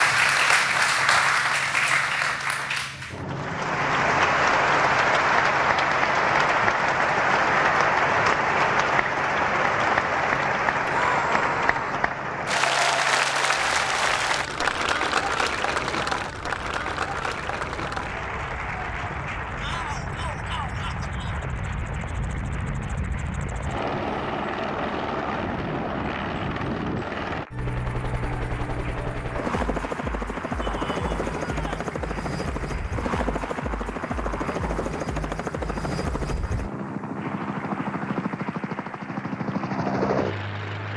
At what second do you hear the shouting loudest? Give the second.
11 s.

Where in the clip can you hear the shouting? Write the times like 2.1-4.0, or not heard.
10.8-12.1, 19.6-21.4, 30.6-31.9.